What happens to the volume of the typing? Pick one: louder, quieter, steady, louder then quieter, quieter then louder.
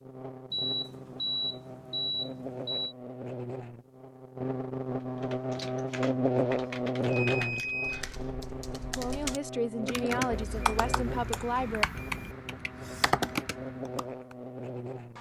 louder.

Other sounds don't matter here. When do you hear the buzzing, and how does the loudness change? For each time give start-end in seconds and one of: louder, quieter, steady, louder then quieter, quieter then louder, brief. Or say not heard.
0.0-15.1 louder then quieter.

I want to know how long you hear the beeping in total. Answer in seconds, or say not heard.
5 s.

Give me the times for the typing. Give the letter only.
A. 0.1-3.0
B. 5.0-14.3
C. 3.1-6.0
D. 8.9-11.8
B.